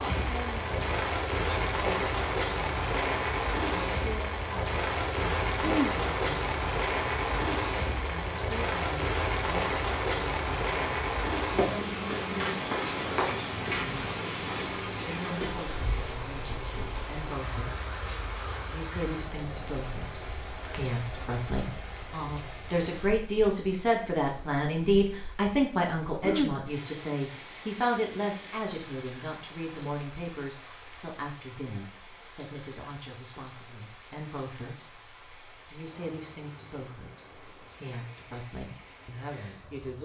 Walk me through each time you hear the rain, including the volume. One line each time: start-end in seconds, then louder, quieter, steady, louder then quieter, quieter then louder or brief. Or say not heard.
0.0-40.0 quieter.